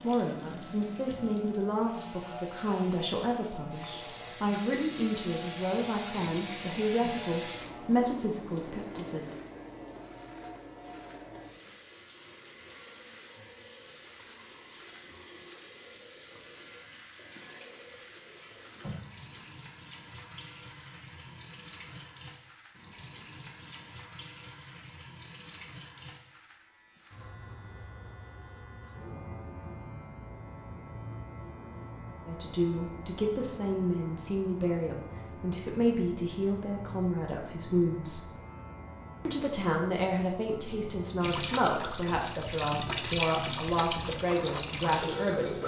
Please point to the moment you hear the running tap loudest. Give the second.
43 s.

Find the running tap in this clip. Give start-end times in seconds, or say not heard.
0.0-26.2, 41.2-45.6.